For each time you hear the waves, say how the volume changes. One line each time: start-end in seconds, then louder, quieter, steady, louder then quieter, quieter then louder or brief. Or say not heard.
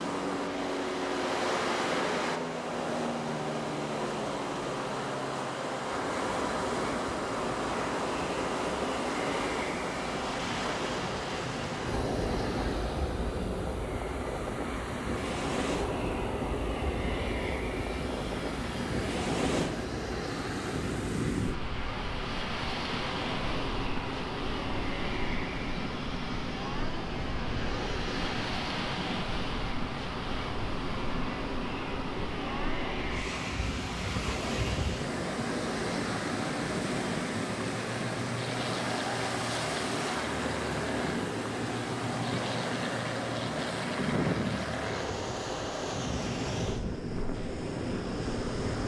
0.0-48.8 steady.